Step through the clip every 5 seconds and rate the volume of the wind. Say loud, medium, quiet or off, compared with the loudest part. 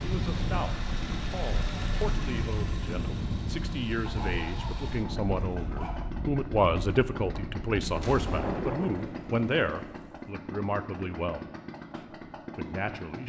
loud, loud, off.